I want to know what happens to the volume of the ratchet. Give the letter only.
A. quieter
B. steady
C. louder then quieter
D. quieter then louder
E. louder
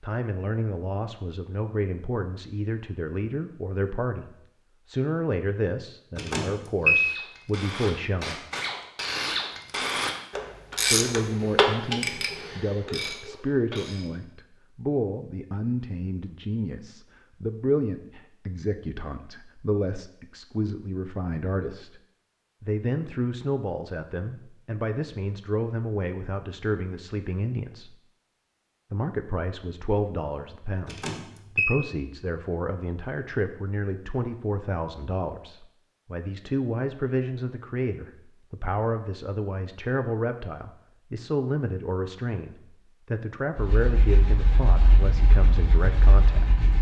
C.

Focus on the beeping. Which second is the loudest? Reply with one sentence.
The loudest moment of the beeping is at 7 seconds.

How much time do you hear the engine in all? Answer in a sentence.
You can hear the engine for 3 seconds altogether.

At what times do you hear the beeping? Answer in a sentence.
The beeping can be heard from 6.2 to 7.1 s and from 30.9 to 31.8 s.